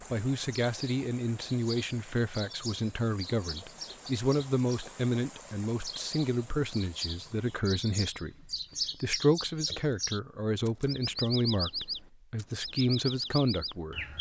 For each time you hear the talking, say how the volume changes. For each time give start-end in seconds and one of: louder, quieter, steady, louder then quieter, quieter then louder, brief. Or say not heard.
0.1-14.1 steady.